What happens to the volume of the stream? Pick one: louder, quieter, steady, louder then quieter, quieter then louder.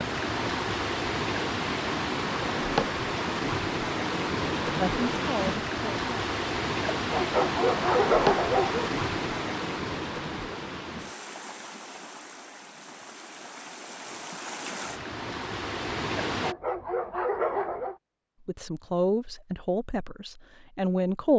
quieter.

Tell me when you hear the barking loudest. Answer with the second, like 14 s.
8 s.